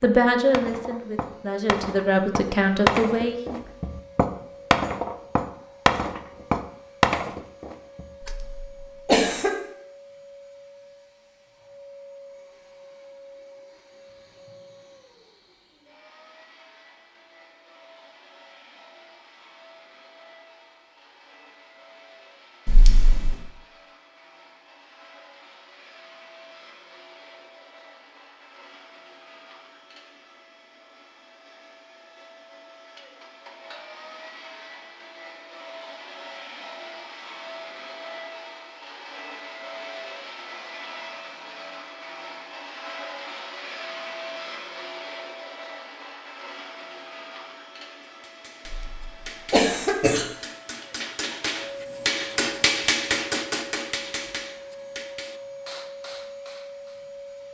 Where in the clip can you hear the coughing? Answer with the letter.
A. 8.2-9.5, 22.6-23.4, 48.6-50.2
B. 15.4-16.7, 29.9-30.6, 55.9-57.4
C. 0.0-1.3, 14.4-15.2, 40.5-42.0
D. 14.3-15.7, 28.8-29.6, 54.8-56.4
A.